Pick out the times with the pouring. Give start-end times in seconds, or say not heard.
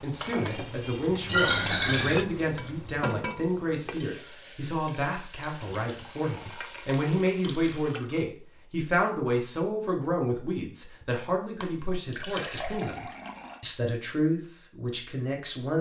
1.2-2.2, 5.9-8.2, 12.1-13.6.